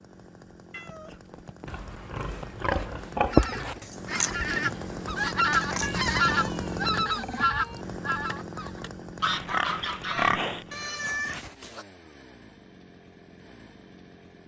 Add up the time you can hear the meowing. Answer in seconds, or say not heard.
5 s.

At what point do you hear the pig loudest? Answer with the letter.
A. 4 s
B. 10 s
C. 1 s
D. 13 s
B.